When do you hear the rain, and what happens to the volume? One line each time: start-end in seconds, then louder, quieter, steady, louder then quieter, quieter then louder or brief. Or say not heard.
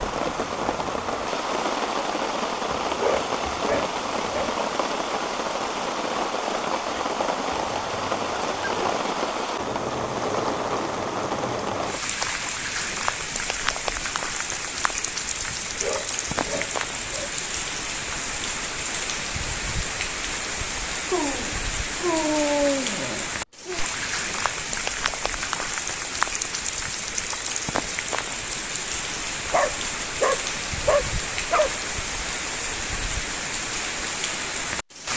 0.0-35.1 steady.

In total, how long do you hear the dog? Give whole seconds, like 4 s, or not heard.
10 s.